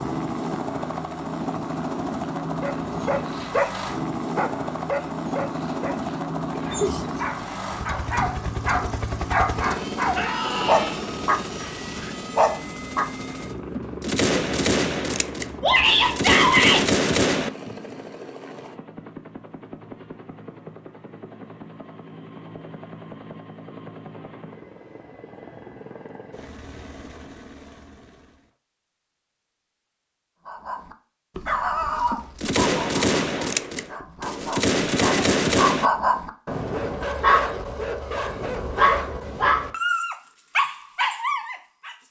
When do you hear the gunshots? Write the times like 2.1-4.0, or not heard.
13.8-17.5, 32.1-35.9.